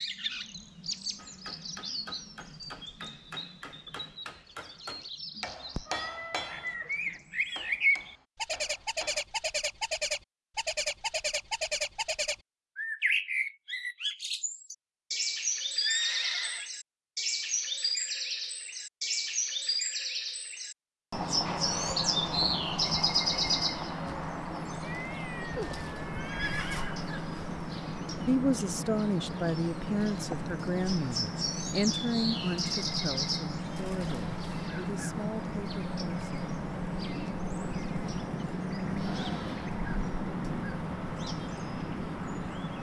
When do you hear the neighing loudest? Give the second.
16 s.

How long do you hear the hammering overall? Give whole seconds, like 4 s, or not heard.
8 s.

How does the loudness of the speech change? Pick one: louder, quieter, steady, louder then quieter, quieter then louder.
quieter.